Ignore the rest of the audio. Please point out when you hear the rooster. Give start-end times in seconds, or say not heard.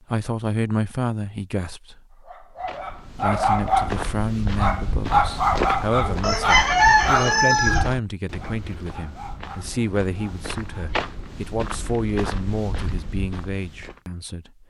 6.2-8.0.